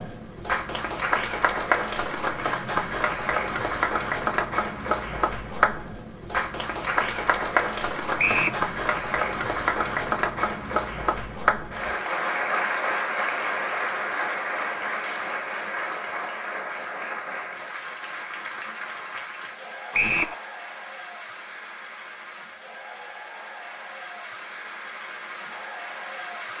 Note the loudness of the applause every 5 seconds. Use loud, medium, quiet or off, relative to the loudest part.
loud, loud, loud, medium, quiet, medium.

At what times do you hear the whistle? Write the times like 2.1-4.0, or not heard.
8.2-8.6, 19.9-20.4.